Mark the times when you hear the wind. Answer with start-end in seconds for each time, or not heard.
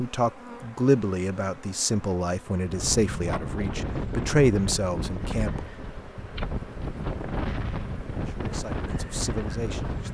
2.6-10.0.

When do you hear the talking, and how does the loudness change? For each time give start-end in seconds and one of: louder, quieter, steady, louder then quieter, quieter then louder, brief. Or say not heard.
0.0-5.7 quieter then louder
8.2-10.0 brief.